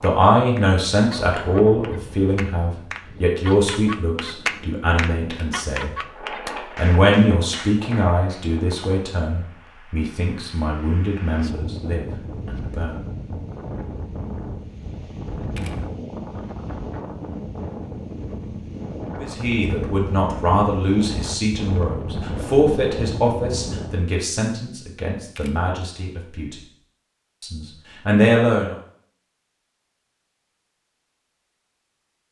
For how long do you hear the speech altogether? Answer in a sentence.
You can hear the speech for 21 seconds altogether.